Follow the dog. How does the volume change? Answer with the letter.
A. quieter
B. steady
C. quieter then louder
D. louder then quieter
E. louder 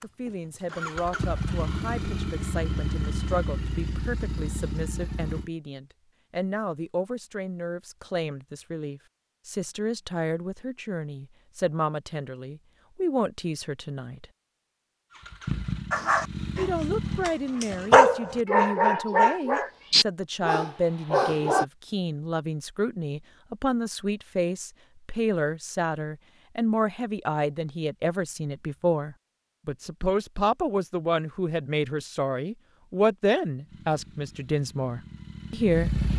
D.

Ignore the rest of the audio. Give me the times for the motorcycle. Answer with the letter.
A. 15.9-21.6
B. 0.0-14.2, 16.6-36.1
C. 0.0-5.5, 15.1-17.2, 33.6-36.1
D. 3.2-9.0
C.